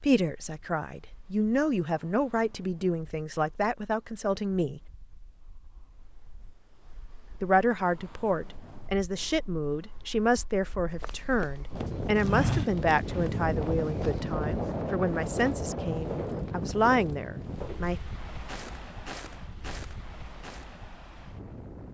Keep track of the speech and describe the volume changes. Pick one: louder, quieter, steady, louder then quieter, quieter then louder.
steady.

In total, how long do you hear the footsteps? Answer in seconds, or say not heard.
10 s.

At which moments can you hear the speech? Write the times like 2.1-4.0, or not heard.
0.0-4.8, 7.4-18.0.